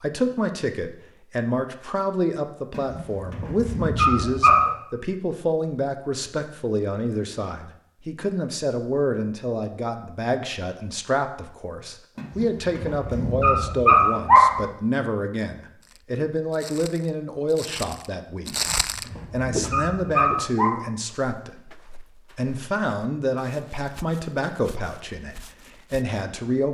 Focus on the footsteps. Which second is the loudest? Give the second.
19 s.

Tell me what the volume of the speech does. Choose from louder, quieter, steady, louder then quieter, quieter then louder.
steady.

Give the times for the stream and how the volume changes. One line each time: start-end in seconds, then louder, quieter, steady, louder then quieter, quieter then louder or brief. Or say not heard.
not heard.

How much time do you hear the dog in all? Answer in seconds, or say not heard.
7 s.